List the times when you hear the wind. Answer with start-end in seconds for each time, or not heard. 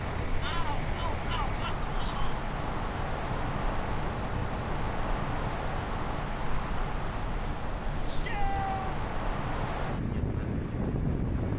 0.0-11.5.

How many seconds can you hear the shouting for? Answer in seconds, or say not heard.
3 s.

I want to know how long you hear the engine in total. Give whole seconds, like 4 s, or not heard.
2 s.